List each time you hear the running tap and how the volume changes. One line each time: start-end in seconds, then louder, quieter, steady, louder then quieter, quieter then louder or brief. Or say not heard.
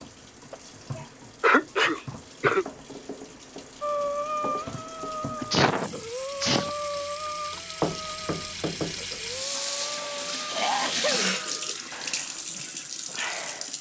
0.0-13.7 louder.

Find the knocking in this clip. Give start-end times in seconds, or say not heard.
7.8-9.1.